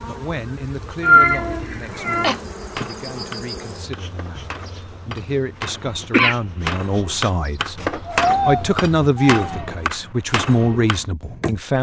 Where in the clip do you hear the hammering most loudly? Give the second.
8 s.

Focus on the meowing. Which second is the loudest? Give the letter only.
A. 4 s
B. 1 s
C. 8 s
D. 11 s
B.